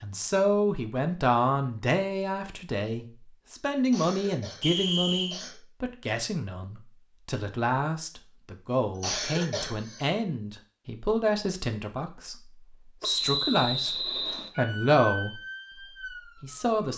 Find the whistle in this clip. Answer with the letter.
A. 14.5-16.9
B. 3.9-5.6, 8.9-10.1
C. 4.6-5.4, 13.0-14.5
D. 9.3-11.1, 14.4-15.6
C.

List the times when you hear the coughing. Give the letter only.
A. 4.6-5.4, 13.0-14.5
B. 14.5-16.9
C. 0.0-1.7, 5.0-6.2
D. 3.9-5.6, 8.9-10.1
D.